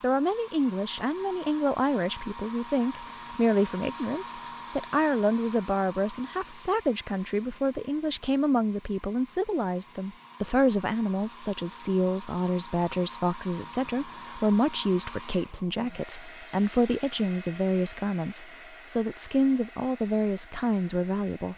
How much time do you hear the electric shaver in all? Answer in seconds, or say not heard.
not heard.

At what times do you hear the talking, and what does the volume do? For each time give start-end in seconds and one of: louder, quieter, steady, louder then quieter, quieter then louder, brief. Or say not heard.
0.0-21.5 steady.